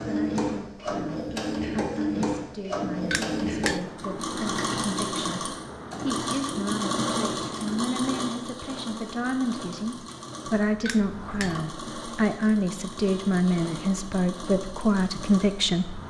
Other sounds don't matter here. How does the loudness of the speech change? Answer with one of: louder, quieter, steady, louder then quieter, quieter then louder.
louder.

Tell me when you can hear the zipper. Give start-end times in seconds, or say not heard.
not heard.